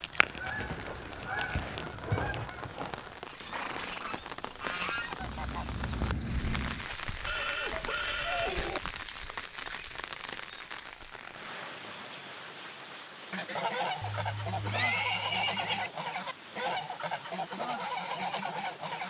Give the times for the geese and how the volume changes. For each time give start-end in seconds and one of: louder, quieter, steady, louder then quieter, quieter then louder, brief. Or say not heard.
0.0-6.9 quieter then louder
13.3-19.0 steady.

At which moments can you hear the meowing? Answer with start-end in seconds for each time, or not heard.
7.7-8.8.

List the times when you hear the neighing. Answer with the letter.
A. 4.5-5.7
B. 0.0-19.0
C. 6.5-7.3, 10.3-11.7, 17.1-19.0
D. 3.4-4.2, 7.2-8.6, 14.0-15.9
D.